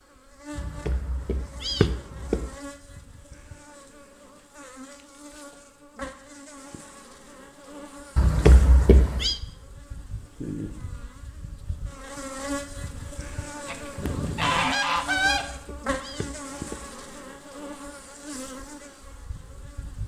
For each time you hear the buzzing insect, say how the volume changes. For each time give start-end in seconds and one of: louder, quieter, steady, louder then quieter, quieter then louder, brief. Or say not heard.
0.0-20.0 louder.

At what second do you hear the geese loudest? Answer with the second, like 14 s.
15 s.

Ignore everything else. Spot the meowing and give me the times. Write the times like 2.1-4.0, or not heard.
0.6-2.5, 8.2-9.3, 15.1-16.9.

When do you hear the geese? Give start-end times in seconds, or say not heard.
13.7-15.4.